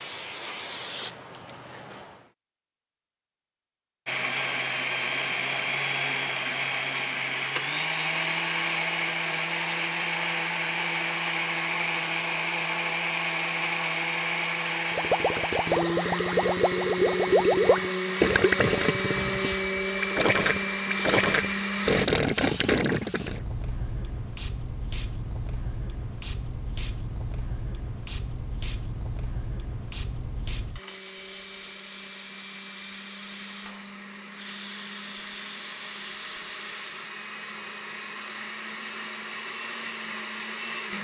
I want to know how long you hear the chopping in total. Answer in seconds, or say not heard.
not heard.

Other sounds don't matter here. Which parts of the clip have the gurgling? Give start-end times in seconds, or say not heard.
14.9-23.4.